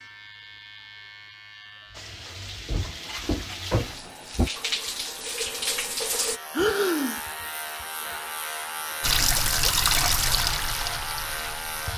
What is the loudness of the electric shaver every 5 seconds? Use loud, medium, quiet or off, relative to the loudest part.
quiet, loud, loud.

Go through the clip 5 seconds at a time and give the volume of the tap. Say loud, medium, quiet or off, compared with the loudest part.
medium, loud, loud.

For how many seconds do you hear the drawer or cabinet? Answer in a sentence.
You can hear the drawer or cabinet for 2 seconds altogether.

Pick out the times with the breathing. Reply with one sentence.
The breathing can be heard from 6.5 to 7.2 s.